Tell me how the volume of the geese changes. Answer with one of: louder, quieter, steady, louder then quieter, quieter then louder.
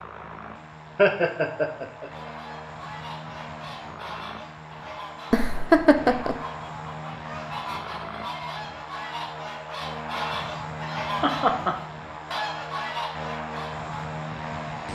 louder.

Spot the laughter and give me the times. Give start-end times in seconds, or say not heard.
0.9-2.3, 5.3-6.3, 10.2-11.8.